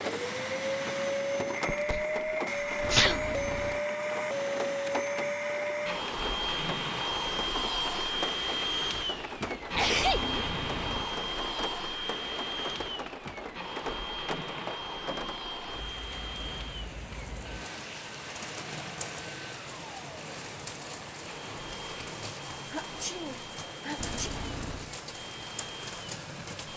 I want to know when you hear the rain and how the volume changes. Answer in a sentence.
You can hear the rain from 0.0 to 26.7 s, at a steady volume.